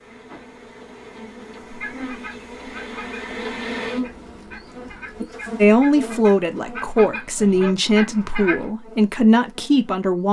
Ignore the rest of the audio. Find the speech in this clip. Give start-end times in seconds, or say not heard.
5.6-10.2.